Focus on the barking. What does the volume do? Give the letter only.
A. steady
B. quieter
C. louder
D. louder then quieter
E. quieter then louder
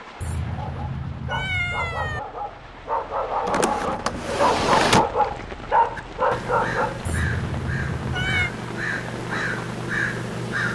C.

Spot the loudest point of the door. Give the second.
5 s.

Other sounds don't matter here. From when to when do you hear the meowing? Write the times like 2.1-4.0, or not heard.
0.2-2.2, 7.0-8.5.